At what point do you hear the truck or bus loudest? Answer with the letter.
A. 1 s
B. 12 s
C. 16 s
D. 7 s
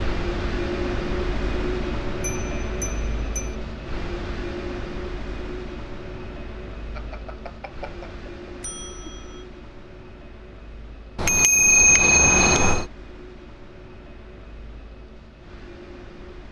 A.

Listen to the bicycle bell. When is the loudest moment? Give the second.
12 s.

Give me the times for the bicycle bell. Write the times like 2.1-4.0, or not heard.
2.2-3.5, 7.0-9.4, 11.2-12.8.